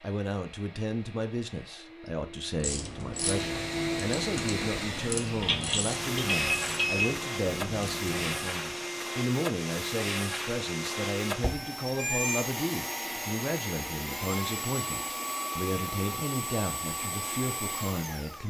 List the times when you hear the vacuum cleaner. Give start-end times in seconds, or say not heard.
0.0-18.4.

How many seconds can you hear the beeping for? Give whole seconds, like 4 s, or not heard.
3 s.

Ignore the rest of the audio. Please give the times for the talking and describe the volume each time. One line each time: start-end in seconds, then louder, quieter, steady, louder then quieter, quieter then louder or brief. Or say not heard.
0.0-18.4 steady.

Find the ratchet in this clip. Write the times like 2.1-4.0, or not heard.
2.5-8.6.